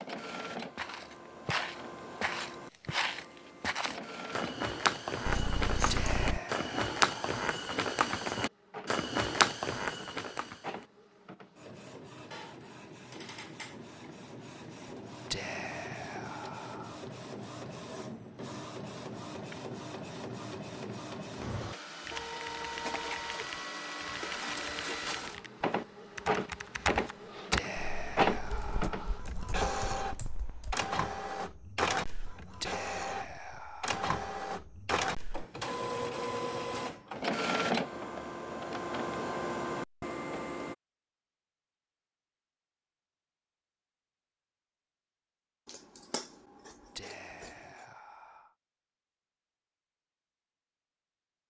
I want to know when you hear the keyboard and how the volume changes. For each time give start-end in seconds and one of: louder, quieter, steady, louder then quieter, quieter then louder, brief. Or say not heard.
22.1-30.8 louder then quieter.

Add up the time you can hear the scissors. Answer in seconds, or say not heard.
3 s.